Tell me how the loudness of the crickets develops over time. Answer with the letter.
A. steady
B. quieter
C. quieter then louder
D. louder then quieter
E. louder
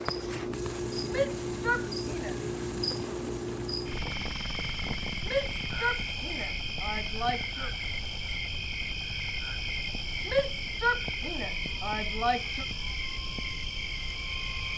A.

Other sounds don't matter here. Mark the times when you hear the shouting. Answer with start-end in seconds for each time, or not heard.
1.1-2.4, 5.2-7.7, 10.2-12.7.